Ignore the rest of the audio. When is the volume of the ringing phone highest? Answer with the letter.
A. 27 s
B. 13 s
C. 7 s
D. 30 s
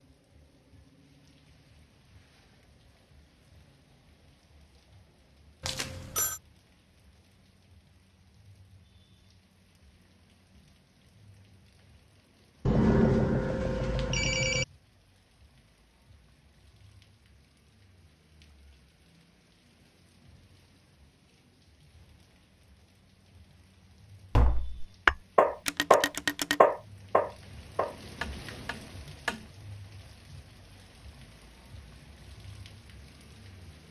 B.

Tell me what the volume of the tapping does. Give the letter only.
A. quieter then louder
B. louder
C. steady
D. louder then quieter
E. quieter
E.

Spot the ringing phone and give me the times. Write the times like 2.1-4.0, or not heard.
5.6-6.4, 12.7-14.7, 25.6-26.6.